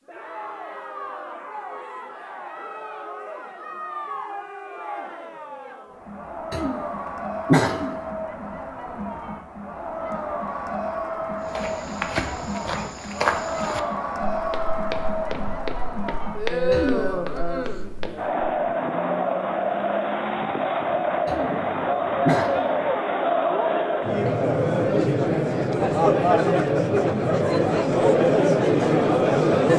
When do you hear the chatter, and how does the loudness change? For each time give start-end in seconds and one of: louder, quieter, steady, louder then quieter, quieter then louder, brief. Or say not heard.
0.1-29.7 louder.